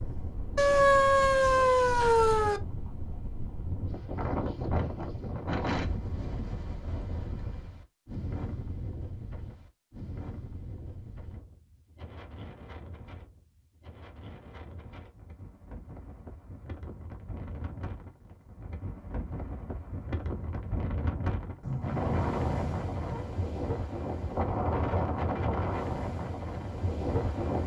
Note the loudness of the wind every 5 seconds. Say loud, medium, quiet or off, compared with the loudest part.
medium, medium, quiet, quiet, loud, loud.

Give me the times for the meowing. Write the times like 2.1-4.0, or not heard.
0.6-2.6, 21.6-23.2.